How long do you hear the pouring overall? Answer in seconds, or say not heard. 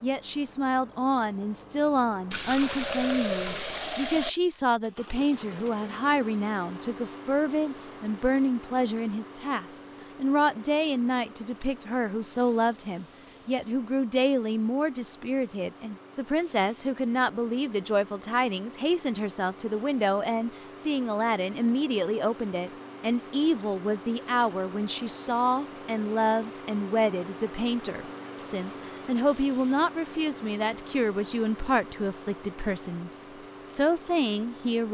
2 s.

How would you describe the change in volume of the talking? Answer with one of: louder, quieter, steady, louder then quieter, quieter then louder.
steady.